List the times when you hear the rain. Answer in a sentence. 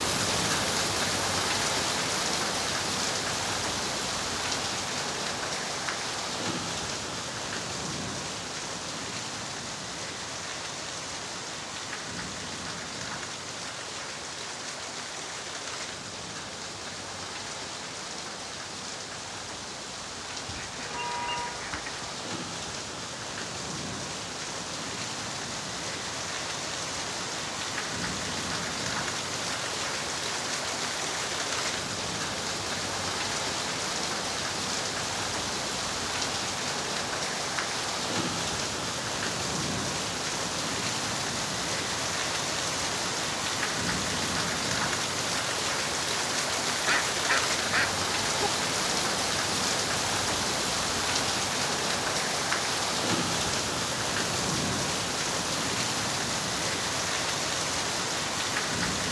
The rain can be heard from 0.0 to 59.0 s.